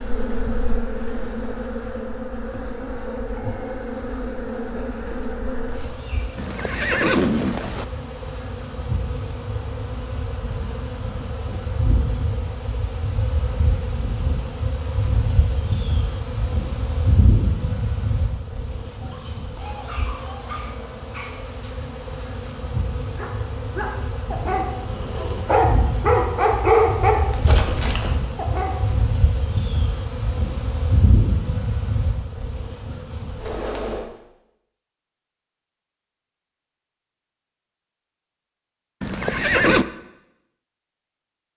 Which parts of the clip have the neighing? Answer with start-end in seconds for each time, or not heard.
6.3-7.8, 39.0-39.9.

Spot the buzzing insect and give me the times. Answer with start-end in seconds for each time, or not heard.
0.0-34.0.